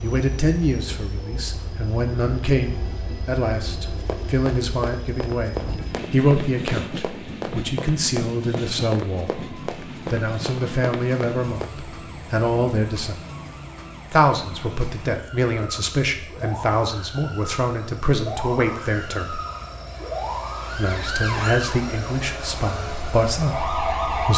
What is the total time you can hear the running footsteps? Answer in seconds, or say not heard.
8 s.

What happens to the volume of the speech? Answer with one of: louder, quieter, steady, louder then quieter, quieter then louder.
steady.